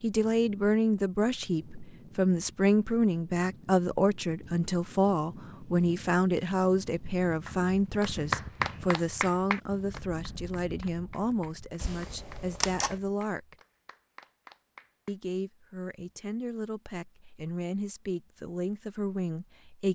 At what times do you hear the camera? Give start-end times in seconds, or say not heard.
11.8-13.0.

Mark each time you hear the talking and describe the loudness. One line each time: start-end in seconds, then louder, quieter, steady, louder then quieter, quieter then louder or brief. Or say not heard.
0.0-13.6 quieter
15.1-19.8 louder.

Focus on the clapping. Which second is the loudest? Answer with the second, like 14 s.
8 s.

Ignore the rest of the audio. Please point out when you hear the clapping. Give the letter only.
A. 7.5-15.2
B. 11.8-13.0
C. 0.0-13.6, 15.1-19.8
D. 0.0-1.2
A.